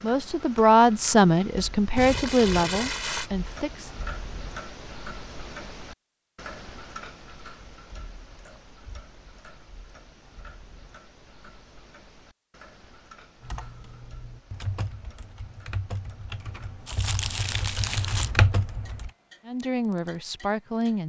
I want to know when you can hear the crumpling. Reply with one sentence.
The crumpling can be heard from 1.9 to 3.3 s and from 16.9 to 18.3 s.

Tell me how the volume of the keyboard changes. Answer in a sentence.
The volume of the keyboard goes up.